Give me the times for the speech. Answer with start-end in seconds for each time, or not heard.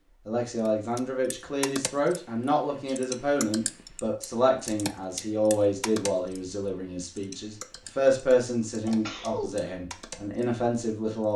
0.2-11.3.